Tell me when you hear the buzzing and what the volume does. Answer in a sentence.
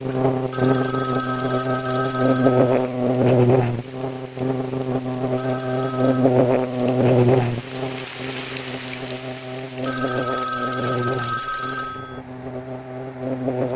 The buzzing can be heard from 0.0 to 13.7 s, getting quieter.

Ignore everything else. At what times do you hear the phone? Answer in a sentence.
The phone can be heard from 0.5 to 2.9 s, from 5.3 to 6.3 s and from 9.8 to 12.2 s.